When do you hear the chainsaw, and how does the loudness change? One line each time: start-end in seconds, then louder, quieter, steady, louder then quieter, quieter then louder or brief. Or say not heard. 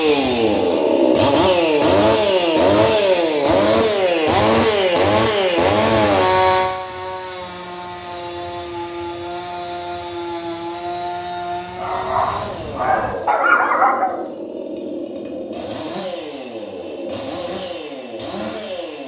0.0-19.0 quieter.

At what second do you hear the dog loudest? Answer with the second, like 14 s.
14 s.